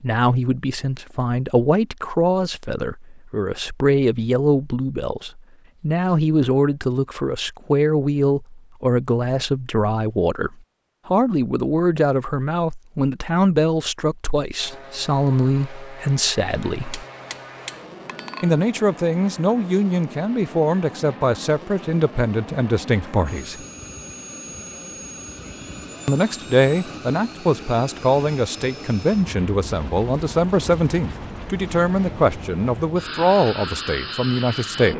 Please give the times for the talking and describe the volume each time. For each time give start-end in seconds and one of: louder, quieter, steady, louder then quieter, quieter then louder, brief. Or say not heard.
0.0-17.1 steady
18.4-23.6 steady
26.1-34.9 steady.